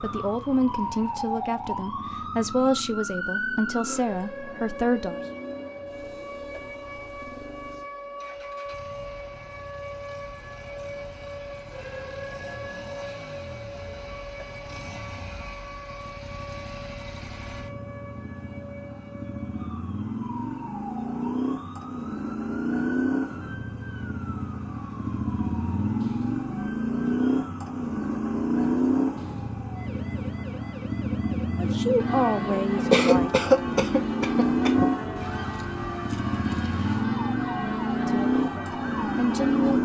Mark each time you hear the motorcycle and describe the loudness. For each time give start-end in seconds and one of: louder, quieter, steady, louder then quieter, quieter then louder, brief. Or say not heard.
0.0-39.8 louder.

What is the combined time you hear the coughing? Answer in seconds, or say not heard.
2 s.